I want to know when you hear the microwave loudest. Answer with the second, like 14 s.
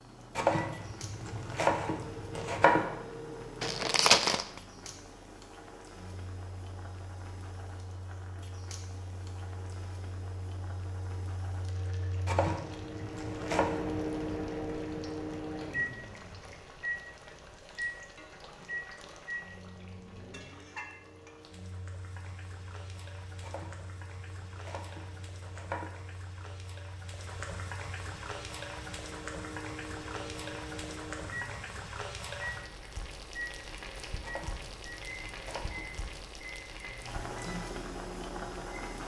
14 s.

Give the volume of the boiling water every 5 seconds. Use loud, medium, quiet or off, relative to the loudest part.
medium, medium, medium, medium, medium, loud, loud, loud.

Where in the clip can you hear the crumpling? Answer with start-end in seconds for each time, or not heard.
3.6-4.6.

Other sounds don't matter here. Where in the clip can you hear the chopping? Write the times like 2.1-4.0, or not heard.
0.3-2.9, 12.2-13.8, 23.4-25.9, 34.2-36.0.